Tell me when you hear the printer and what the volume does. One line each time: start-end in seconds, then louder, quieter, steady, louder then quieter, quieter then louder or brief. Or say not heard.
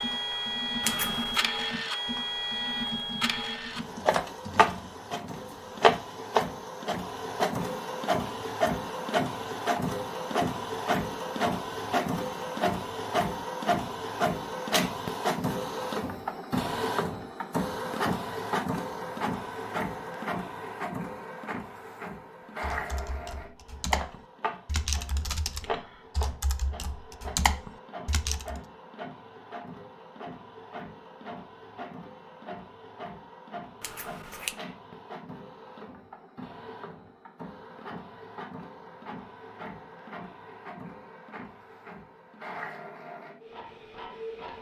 0.0-44.5 quieter.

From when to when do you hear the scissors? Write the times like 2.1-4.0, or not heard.
0.8-1.4, 33.8-34.6.